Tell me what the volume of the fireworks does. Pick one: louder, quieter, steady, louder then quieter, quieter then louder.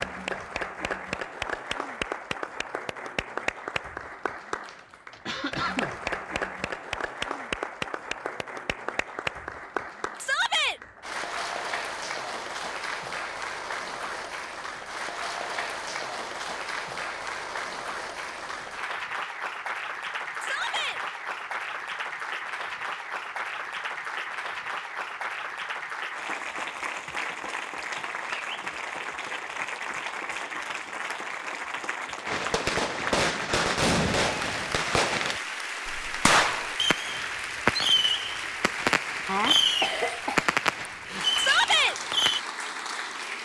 steady.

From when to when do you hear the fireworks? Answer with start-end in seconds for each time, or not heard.
32.2-42.4.